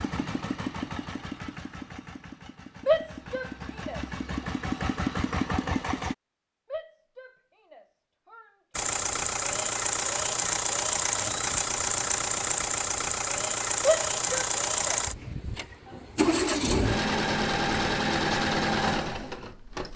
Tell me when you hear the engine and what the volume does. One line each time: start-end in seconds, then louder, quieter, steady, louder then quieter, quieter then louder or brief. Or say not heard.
0.0-6.2 quieter then louder
8.8-19.9 steady.